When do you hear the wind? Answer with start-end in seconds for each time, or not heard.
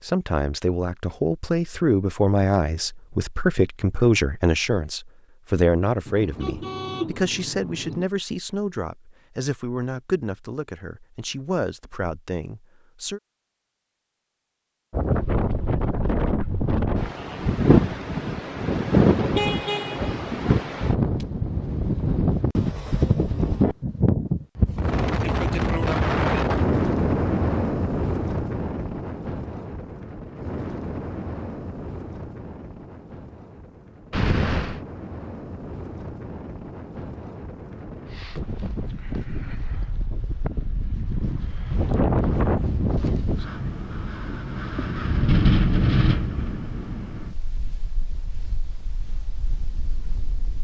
14.9-50.5.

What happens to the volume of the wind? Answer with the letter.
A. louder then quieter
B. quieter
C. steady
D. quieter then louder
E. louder
D.